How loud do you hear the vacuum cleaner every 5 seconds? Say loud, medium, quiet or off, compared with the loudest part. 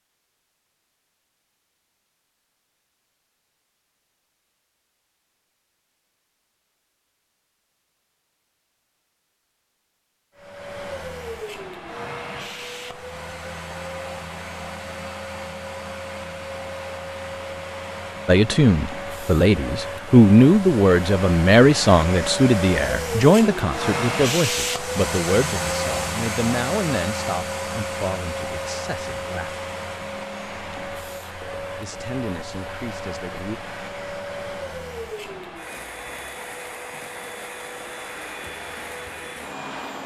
off, off, medium, medium, loud, loud, medium, medium.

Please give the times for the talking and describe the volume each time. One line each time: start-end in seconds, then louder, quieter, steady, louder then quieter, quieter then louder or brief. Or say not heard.
18.2-29.6 quieter
31.8-33.6 brief.